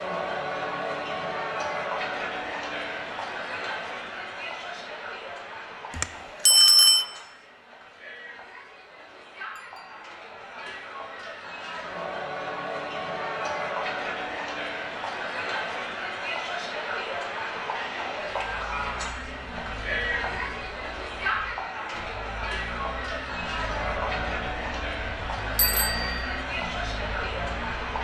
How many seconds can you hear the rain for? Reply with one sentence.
You can't hear the rain here.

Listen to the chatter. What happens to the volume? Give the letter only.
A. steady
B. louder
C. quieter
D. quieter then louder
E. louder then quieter
D.